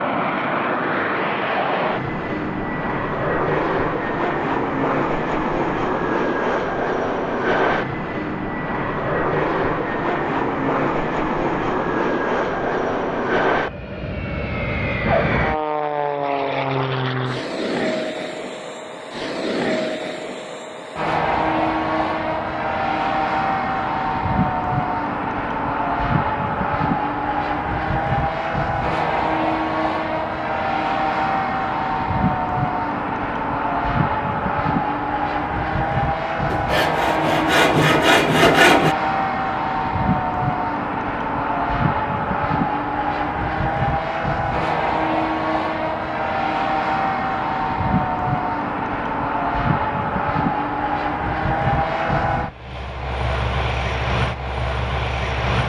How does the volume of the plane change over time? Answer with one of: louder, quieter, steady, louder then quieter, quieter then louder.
steady.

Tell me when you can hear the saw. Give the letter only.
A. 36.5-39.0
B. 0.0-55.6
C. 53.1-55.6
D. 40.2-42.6
A.